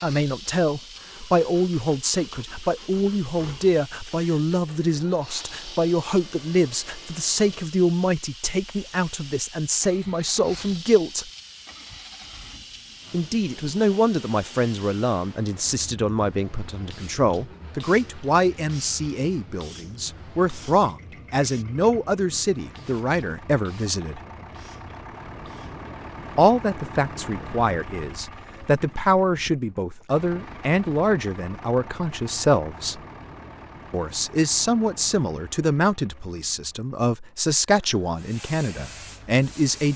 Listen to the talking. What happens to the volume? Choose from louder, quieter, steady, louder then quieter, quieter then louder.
steady.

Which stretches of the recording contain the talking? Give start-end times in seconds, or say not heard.
0.0-11.3, 13.1-24.2, 26.4-33.0, 33.9-39.9.